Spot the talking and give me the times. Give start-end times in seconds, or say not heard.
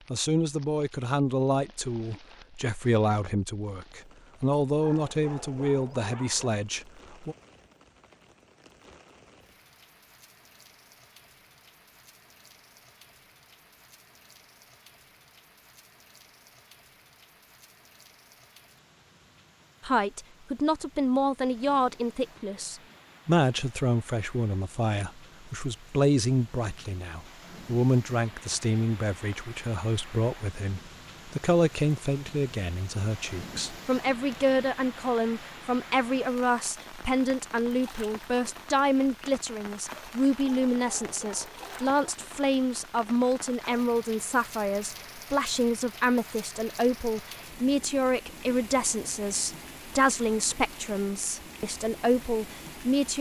0.1-7.3, 19.8-53.1.